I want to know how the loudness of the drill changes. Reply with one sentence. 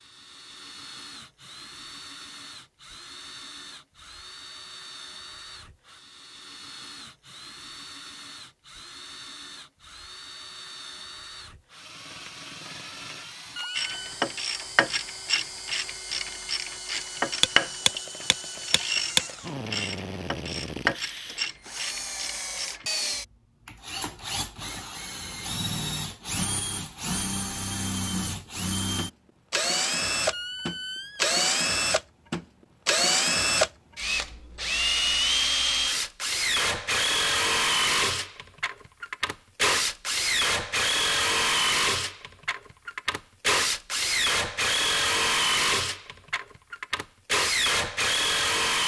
The volume of the drill goes up.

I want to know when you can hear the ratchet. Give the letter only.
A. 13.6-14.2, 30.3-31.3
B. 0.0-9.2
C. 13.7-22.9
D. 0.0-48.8
C.